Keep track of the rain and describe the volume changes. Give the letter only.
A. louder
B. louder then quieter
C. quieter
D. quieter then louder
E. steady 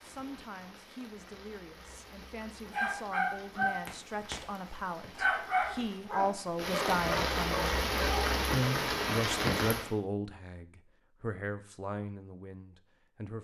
A.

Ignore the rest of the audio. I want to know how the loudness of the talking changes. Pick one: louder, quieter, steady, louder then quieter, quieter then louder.
louder then quieter.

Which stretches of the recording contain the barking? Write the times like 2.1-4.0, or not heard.
2.7-4.3, 5.2-8.2.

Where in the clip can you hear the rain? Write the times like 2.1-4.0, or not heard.
0.0-9.9.